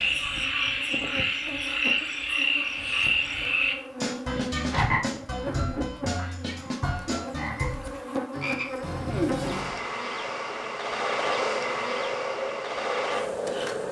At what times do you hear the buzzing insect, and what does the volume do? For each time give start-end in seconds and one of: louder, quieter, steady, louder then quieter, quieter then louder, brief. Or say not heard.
0.1-13.8 louder.